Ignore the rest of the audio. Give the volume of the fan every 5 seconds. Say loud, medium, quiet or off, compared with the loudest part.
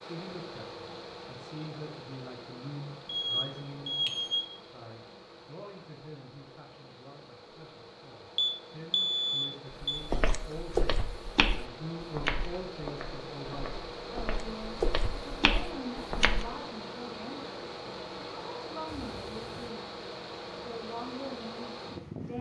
medium, medium, loud, loud, loud.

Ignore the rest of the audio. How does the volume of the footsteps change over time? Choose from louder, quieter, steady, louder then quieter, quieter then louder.
quieter then louder.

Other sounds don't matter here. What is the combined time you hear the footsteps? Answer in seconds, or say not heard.
7 s.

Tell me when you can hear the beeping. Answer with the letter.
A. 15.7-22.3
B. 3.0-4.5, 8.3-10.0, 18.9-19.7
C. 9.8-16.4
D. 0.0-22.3
B.